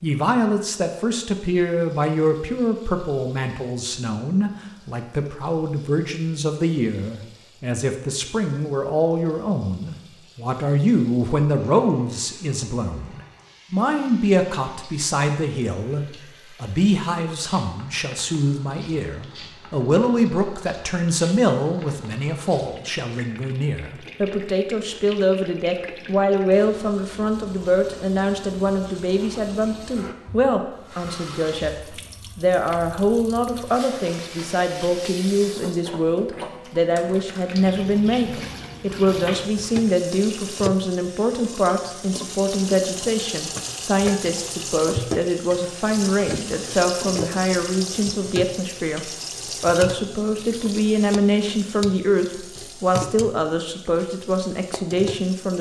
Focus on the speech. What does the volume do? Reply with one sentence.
The loudness of the speech stays about the same.